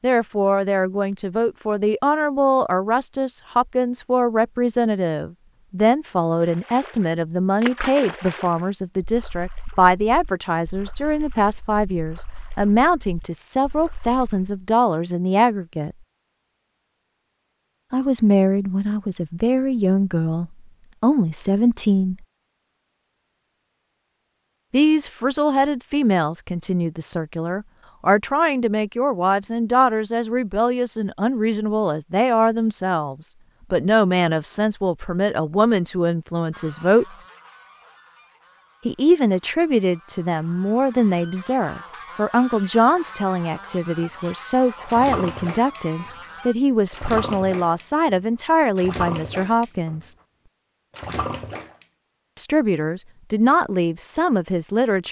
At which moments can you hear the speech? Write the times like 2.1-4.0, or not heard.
0.0-15.9, 17.9-22.2, 24.7-37.0, 38.9-50.1, 52.4-55.0.